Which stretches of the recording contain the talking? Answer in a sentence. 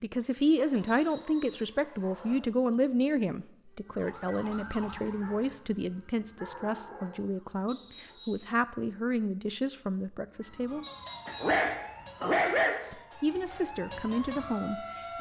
You can hear the talking from 0.0 to 10.8 s and from 12.8 to 15.1 s.